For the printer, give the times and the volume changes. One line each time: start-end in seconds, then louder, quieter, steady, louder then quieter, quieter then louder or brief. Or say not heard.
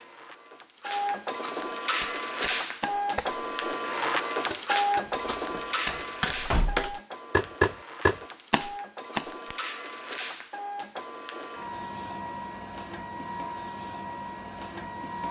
0.0-15.2 quieter.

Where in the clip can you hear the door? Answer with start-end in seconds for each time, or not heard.
5.0-7.0.